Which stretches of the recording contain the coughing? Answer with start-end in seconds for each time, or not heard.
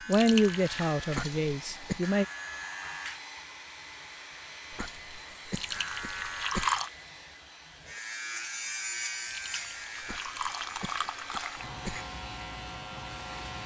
1.1-2.0, 4.7-6.7, 10.0-12.1.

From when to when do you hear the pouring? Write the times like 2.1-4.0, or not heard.
0.1-0.9, 5.5-6.9, 9.2-11.7.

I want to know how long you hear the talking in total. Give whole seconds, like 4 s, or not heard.
2 s.